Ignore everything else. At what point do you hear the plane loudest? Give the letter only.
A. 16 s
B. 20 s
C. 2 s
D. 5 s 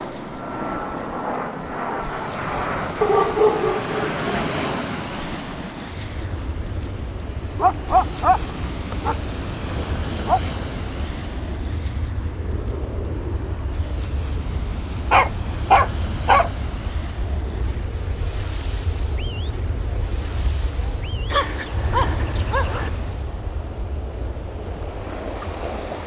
C.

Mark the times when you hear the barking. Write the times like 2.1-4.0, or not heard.
3.0-4.5, 7.5-10.4, 15.1-16.5, 21.3-22.9.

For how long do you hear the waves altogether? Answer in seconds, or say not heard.
26 s.